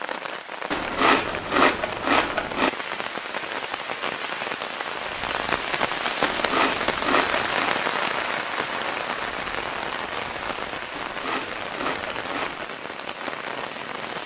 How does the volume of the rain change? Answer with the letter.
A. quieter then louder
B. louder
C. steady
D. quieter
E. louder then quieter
E.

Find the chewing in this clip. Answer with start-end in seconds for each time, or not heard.
0.7-2.7, 6.2-7.8, 10.9-12.7.